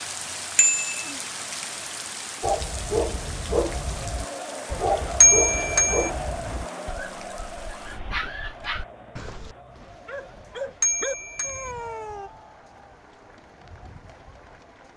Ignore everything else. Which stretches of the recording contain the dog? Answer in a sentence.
The dog can be heard from 2.4 to 12.3 s.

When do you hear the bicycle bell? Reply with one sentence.
The bicycle bell can be heard from 0.6 to 1.1 s, from 5.2 to 6.1 s and from 10.8 to 11.8 s.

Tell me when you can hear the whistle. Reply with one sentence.
You can't hear the whistle here.